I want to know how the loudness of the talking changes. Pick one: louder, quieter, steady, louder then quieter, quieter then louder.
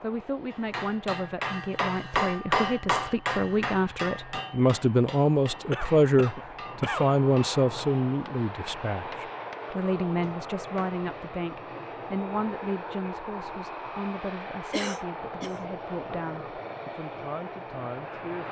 louder then quieter.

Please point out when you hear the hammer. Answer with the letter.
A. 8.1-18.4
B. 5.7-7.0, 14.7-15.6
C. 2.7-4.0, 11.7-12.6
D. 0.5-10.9
D.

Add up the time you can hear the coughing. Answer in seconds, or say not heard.
2 s.